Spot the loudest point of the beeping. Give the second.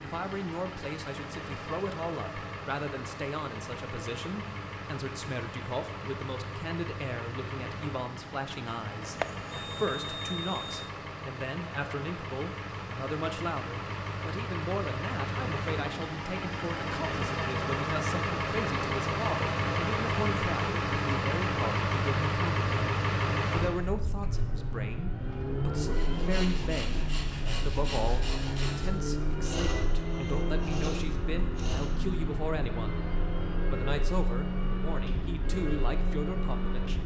9 s.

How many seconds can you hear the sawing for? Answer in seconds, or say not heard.
6 s.